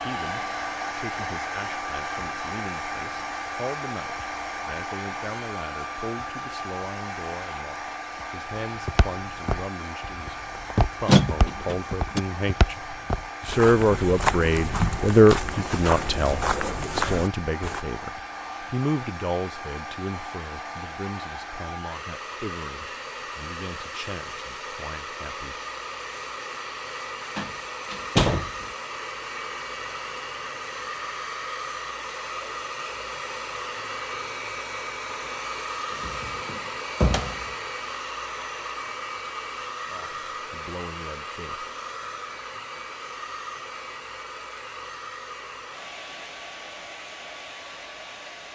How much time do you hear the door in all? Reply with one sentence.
You can hear the door for 4 seconds altogether.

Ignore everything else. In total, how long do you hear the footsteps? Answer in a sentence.
The footsteps can be heard for 9 seconds in total.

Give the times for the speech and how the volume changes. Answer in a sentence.
The speech can be heard from 0.0 to 25.6 s, getting louder then quieter; and briefly from 39.9 to 41.7 s.